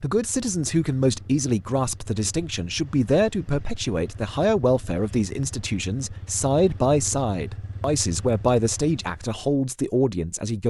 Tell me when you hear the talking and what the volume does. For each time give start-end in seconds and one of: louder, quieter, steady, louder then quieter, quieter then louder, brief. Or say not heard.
0.0-10.6 steady.